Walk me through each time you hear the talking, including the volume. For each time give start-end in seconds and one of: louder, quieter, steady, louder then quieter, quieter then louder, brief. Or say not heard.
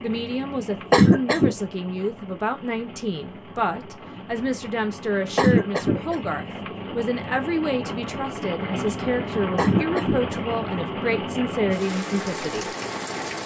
0.0-12.7 steady.